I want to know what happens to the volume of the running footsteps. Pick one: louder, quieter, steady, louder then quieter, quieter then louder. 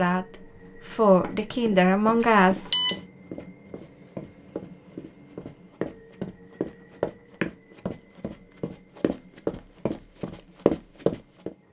louder.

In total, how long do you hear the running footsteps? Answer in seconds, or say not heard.
10 s.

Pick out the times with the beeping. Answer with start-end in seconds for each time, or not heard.
2.2-3.0.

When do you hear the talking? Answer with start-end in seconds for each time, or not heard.
0.0-2.6.